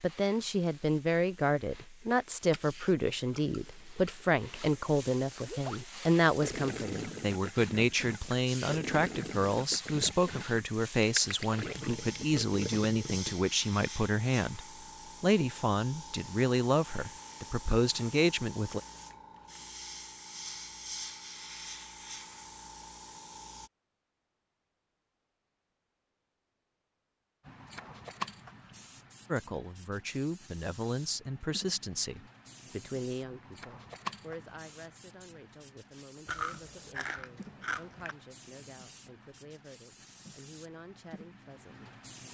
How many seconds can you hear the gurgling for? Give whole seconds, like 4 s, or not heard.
8 s.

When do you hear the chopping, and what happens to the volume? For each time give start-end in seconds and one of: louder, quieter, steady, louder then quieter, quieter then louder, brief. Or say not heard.
not heard.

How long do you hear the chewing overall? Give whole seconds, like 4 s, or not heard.
4 s.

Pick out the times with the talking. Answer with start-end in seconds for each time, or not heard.
0.0-14.6, 15.2-18.8, 29.3-42.0.